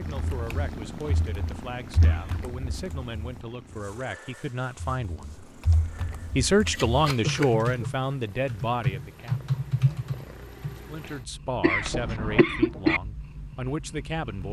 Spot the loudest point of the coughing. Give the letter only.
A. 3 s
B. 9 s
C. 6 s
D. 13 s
D.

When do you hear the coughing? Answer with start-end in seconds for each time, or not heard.
2.0-2.5, 7.2-7.9, 11.6-13.0.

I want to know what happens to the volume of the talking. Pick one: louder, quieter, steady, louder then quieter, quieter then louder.
louder then quieter.